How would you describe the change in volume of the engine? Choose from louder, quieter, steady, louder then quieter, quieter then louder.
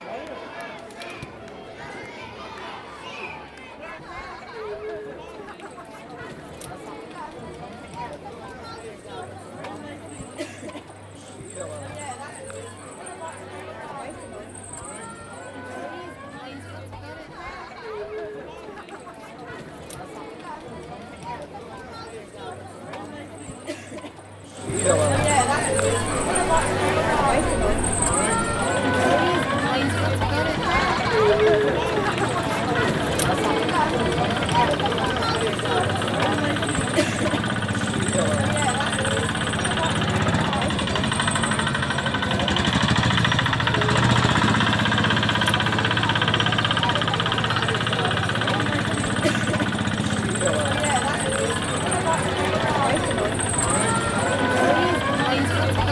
louder then quieter.